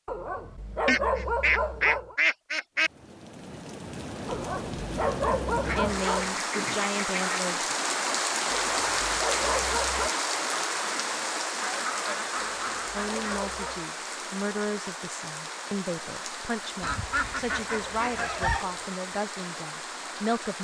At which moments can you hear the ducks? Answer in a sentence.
You can hear the ducks from 0.8 to 2.9 s, from 5.6 to 7.5 s, from 11.6 to 13.8 s and from 16.8 to 18.6 s.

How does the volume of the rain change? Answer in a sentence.
The loudness of the rain goes up, then down.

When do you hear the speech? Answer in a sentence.
You can hear the speech from 5.8 to 7.6 s and from 12.9 to 20.6 s.